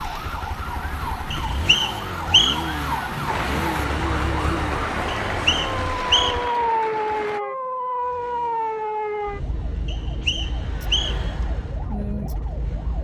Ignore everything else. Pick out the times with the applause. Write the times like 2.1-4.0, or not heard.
3.2-7.4.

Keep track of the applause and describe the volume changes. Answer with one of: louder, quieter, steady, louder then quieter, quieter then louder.
steady.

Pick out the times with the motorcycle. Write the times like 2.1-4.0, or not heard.
0.0-6.5, 8.0-12.9.